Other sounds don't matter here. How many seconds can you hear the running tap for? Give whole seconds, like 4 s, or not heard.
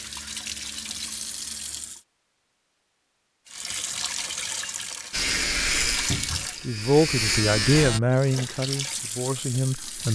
7 s.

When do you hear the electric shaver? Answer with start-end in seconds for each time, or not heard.
5.1-8.0.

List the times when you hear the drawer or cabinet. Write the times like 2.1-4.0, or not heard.
6.1-6.5.